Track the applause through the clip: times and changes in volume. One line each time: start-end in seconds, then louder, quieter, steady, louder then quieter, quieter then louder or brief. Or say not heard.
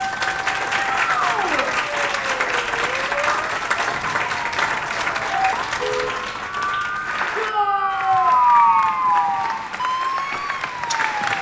0.0-11.3 quieter.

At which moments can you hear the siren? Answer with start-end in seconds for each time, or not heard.
0.0-11.3.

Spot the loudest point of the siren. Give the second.
9 s.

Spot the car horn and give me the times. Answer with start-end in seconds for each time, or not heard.
5.7-6.2.